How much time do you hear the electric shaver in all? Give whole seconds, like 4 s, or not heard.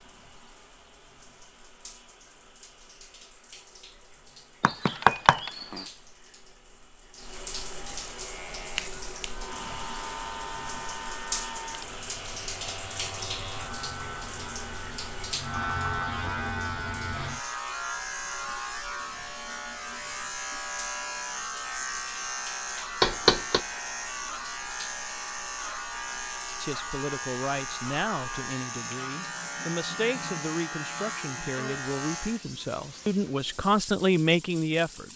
24 s.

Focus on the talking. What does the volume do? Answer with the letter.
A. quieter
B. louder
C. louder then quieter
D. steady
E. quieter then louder
B.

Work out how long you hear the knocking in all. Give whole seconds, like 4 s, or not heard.
2 s.